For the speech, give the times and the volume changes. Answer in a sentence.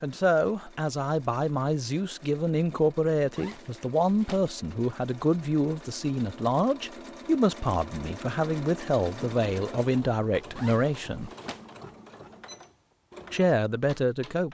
You can hear the speech from 0.0 to 11.3 s, at a steady volume; and briefly from 13.3 to 14.4 s.